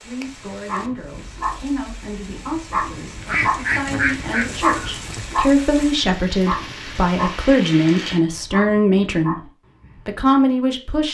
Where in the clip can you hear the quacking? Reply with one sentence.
The quacking can be heard from 3.2 to 5.2 s.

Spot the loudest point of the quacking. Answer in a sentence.
The volume of the quacking peaks at 4 seconds.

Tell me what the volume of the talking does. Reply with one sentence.
The loudness of the talking goes up.